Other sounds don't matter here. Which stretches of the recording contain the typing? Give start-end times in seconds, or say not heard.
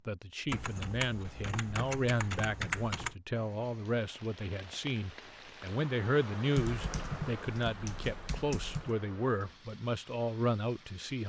0.5-3.1, 6.5-8.9.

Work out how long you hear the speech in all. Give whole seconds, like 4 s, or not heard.
11 s.